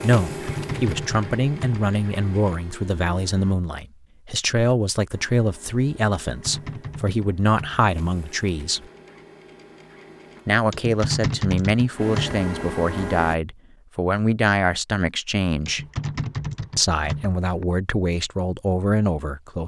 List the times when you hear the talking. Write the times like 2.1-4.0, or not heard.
0.0-8.8, 10.4-15.8, 16.8-19.6.